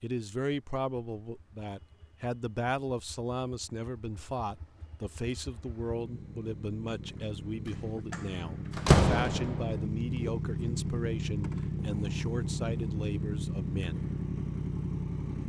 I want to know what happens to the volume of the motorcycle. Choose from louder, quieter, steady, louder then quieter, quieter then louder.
louder.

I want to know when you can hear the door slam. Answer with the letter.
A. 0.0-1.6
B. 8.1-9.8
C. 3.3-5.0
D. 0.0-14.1
B.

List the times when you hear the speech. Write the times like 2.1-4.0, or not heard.
0.0-14.1.